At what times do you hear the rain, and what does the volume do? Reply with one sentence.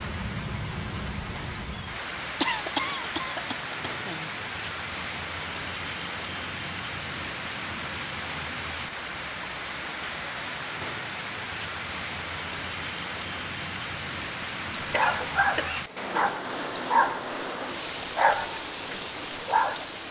The rain can be heard from 0.0 to 20.0 s, at a steady volume.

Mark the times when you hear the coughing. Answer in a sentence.
The coughing can be heard from 2.4 to 4.3 s and from 14.8 to 15.8 s.